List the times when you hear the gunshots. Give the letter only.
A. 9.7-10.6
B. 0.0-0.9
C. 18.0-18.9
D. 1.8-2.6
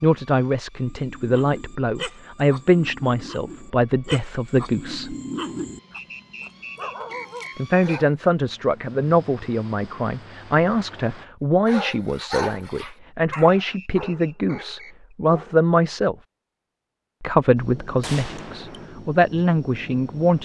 C.